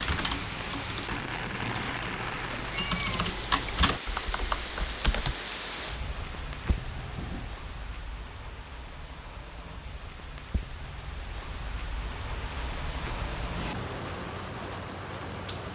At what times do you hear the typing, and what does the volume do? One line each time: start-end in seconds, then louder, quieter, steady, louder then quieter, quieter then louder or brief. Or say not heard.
0.0-5.3 louder then quieter.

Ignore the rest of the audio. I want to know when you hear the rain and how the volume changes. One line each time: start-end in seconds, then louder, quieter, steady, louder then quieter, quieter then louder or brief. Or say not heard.
0.0-15.6 quieter then louder.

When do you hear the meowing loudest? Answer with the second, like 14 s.
3 s.